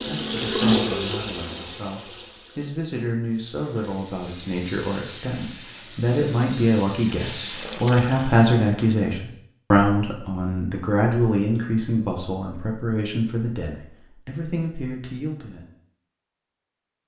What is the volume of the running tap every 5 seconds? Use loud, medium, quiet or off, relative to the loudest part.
loud, medium, off, off.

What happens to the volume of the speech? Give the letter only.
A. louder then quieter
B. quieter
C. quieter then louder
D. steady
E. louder
A.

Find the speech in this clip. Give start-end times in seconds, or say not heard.
0.1-15.7.